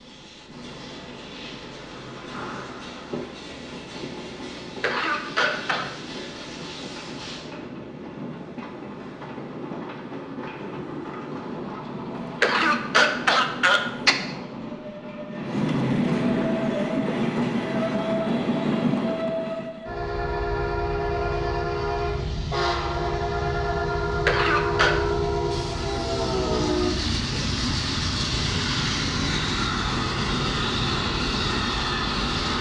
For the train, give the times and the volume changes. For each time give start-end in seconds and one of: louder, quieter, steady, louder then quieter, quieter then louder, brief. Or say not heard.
0.0-32.5 louder.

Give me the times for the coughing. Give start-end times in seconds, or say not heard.
4.5-5.8, 12.2-14.2, 24.2-24.9.